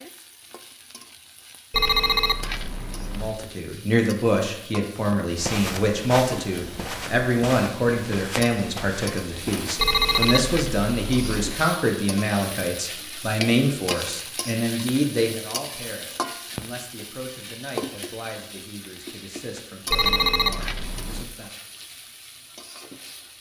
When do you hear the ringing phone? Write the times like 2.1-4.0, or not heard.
1.7-3.4, 9.8-11.7, 19.9-21.3.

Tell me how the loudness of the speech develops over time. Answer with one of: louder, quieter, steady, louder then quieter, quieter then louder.
quieter.